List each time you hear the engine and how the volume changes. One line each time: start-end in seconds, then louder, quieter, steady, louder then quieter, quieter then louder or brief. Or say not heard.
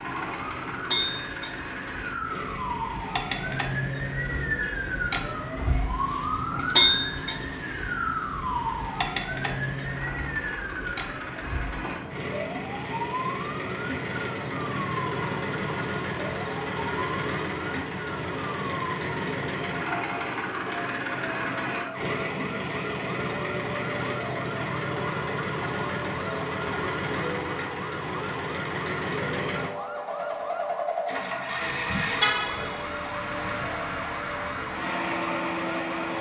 0.0-36.1 louder.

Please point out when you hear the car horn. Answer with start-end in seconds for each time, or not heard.
32.2-32.9.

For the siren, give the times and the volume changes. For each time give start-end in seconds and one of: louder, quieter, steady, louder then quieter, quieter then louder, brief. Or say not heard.
0.0-36.0 quieter.